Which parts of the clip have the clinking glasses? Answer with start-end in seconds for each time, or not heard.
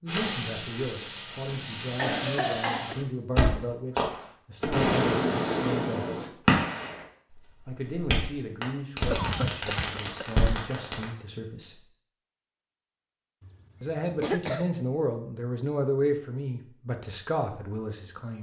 not heard.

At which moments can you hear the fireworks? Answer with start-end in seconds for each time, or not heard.
0.1-11.1.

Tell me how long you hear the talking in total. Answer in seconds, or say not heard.
15 s.